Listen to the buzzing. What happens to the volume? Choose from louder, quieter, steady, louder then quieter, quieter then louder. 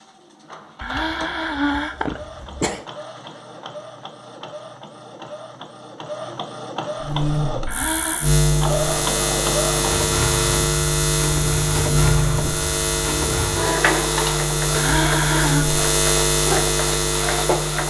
steady.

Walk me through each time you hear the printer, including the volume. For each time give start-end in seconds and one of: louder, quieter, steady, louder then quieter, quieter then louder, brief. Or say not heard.
0.0-17.8 louder.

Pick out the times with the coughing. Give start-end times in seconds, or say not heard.
0.8-2.8, 7.7-8.3, 14.7-15.7.